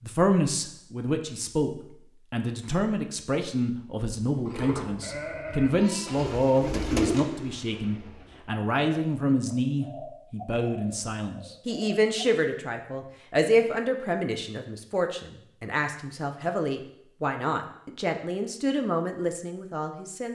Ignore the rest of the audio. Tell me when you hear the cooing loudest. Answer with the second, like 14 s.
7 s.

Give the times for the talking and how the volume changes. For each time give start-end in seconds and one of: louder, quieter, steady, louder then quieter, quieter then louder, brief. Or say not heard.
0.0-1.7 brief
2.3-20.2 steady.